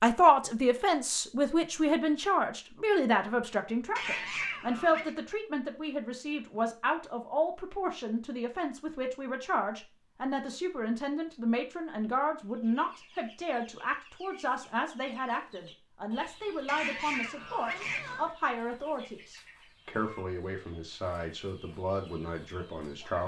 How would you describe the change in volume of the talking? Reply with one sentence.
The volume of the talking goes down.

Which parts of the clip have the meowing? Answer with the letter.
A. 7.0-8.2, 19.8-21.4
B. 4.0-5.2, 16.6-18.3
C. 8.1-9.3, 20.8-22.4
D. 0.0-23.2
B.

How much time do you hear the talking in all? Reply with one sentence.
You can hear the talking for 23 seconds altogether.